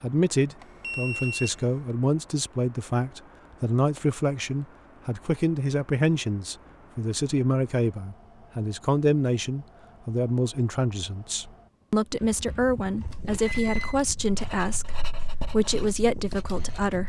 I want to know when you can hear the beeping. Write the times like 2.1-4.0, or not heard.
0.6-1.9, 12.6-13.9.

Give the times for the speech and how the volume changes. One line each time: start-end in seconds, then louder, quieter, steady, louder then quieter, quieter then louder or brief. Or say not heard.
0.0-17.0 steady.